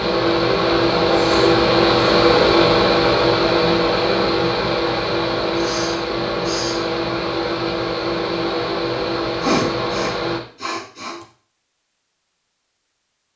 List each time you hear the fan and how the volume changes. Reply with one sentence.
You can hear the fan from 0.0 to 10.4 s, getting quieter.